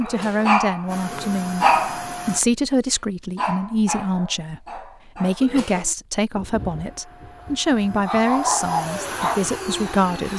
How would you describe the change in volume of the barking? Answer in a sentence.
The loudness of the barking goes down, then up.